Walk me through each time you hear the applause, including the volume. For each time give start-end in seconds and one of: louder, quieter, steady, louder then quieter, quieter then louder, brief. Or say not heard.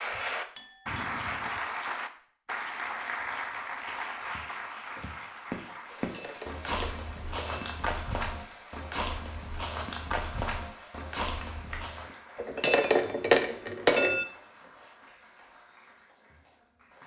0.0-17.0 quieter.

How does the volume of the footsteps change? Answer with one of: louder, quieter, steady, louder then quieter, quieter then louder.
steady.